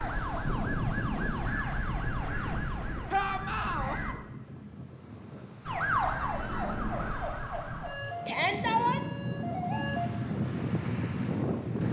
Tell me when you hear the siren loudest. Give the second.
6 s.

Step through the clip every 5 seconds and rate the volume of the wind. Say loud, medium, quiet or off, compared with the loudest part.
medium, medium, loud.